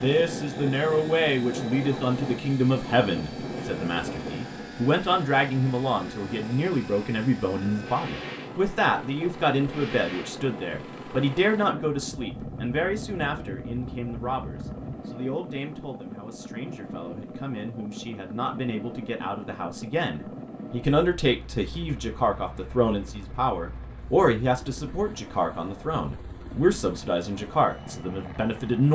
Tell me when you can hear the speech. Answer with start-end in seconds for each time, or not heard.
0.0-28.9.